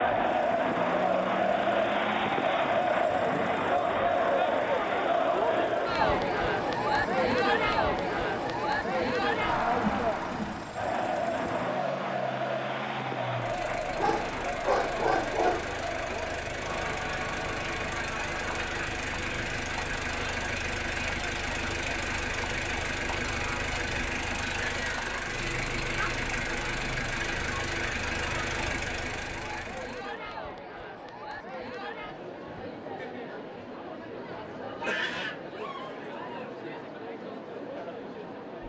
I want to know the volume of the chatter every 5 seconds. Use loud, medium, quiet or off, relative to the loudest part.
loud, loud, medium, medium, quiet, quiet, quiet, quiet.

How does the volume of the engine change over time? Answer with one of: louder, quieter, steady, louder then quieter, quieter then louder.
louder.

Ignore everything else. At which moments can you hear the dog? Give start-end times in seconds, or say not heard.
13.9-15.8, 34.8-36.8.